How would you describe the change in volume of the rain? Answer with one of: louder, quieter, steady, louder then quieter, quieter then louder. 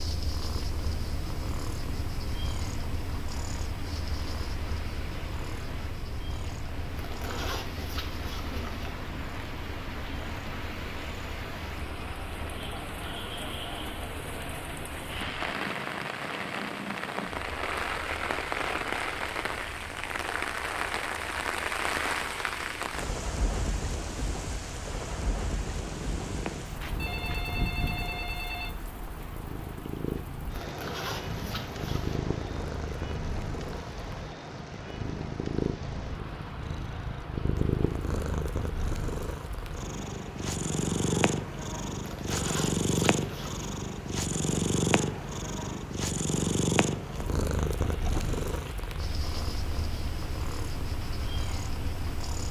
louder then quieter.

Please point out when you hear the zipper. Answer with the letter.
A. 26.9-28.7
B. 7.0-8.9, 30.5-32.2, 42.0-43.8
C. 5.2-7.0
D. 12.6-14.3
B.